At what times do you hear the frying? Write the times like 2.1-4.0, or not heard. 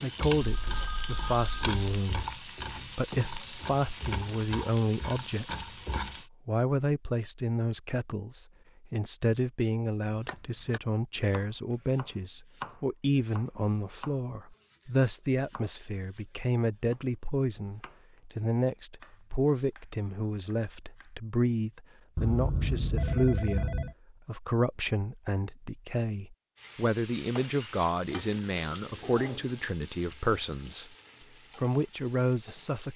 0.0-6.3, 26.6-32.9.